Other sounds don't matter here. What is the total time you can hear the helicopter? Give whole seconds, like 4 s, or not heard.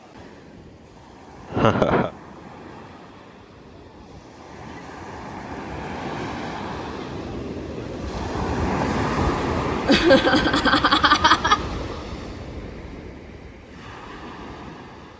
not heard.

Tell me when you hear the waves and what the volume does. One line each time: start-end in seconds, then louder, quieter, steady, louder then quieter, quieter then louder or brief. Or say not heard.
0.0-15.1 louder then quieter.